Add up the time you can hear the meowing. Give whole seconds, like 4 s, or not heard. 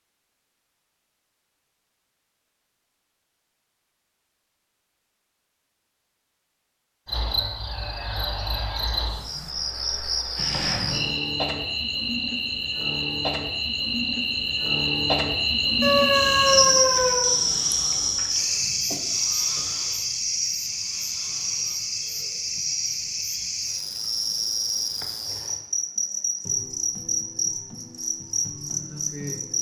2 s.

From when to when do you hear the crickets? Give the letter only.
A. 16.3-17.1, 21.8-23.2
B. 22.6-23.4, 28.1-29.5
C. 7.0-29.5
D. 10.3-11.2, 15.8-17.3
C.